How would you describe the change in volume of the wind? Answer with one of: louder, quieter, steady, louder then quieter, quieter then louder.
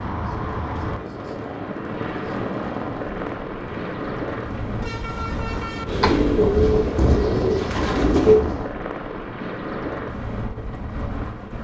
louder.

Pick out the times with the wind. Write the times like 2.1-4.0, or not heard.
0.1-8.8.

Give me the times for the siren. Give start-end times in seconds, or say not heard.
not heard.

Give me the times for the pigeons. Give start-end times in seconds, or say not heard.
5.8-8.4.